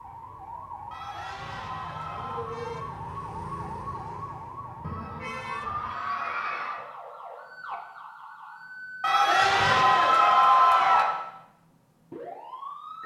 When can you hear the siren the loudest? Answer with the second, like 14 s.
3 s.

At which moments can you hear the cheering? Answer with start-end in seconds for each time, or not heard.
0.9-2.5, 4.8-6.8, 9.0-11.1.